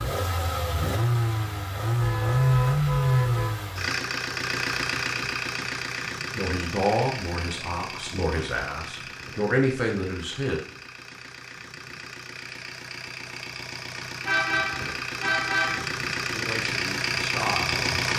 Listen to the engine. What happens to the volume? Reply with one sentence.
The loudness of the engine goes down, then up.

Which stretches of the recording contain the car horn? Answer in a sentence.
You can hear the car horn from 2.0 to 3.5 s and from 14.2 to 15.9 s.